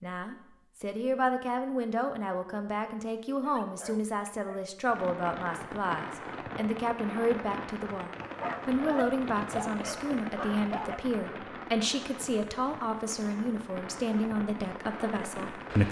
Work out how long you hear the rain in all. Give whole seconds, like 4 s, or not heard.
11 s.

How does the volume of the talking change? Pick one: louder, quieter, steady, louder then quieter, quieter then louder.
steady.